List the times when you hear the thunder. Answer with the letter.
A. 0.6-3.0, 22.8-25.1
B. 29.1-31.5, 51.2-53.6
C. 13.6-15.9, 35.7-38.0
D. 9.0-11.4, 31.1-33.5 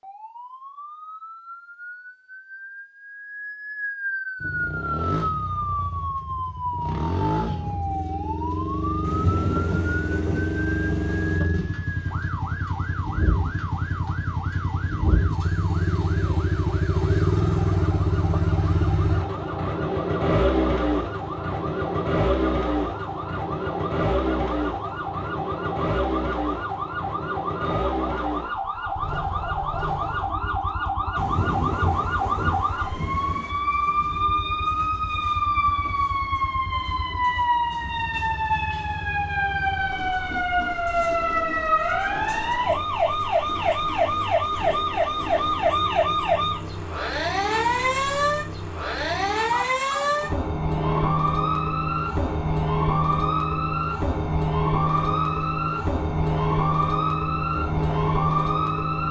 D.